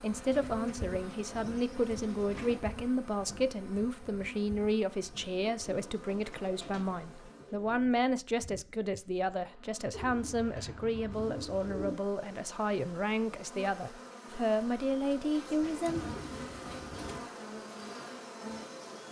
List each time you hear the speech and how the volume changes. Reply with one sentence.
You can hear the speech from 0.0 to 16.1 s, at a steady volume.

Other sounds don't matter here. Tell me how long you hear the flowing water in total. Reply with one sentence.
The flowing water can't be heard in this clip.